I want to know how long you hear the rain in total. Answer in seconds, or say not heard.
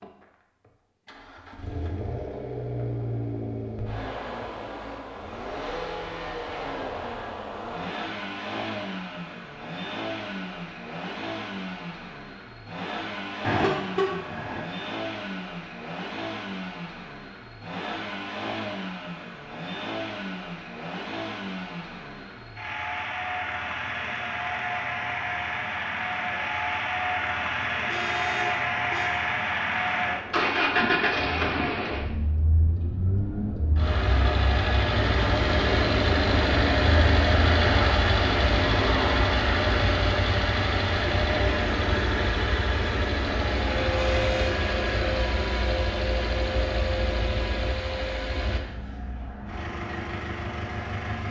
not heard.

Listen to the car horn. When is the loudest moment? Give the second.
14 s.